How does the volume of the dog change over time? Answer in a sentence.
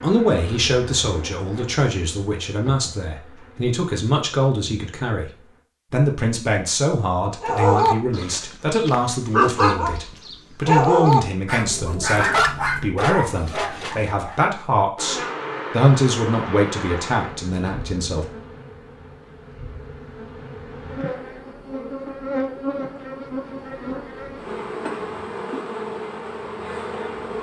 The loudness of the dog goes up, then down.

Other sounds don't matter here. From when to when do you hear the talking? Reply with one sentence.
You can hear the talking from 0.0 to 18.2 s.